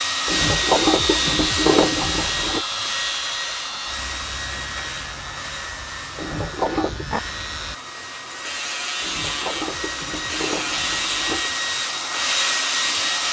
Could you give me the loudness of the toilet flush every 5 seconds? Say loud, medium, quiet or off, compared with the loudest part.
loud, medium, medium.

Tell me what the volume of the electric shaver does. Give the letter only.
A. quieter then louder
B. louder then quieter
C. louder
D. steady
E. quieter
A.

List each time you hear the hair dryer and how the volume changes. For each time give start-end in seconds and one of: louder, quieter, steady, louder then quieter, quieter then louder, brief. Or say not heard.
0.0-13.2 quieter then louder.